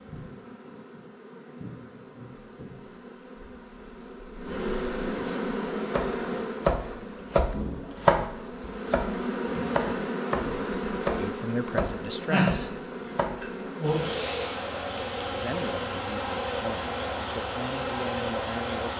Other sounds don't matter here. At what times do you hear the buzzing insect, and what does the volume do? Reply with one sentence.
The buzzing insect can be heard from 0.0 to 18.9 s, getting louder.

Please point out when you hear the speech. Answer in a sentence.
The speech can be heard from 11.2 to 12.8 s and from 15.3 to 18.9 s.